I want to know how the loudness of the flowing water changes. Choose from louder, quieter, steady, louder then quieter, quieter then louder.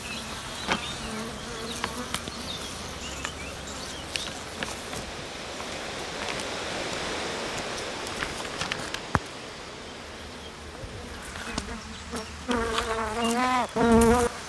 louder then quieter.